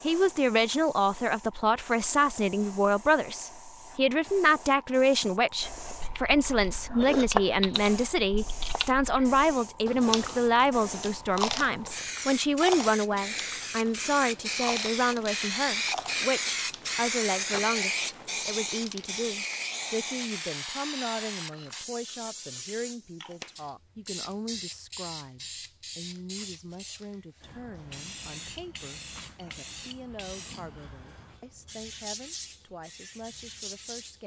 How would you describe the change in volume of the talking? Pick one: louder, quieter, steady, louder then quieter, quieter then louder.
quieter.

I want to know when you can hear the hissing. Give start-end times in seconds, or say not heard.
0.0-34.2.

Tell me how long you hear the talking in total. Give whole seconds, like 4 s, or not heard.
34 s.